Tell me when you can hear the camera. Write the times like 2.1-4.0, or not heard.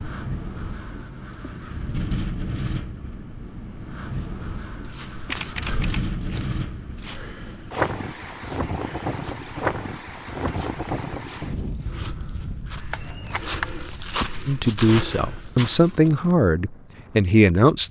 5.2-6.0, 12.9-13.8.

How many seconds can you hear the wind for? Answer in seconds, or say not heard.
18 s.